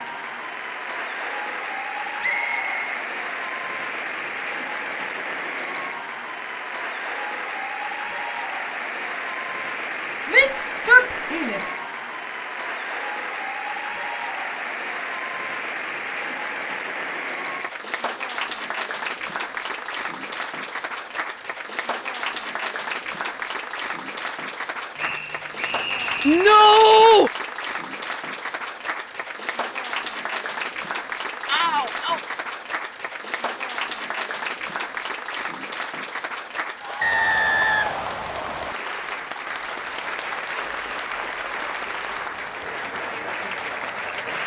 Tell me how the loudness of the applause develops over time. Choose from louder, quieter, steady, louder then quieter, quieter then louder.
steady.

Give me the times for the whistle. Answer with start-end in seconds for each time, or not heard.
2.2-2.9, 24.9-26.6, 37.0-38.8.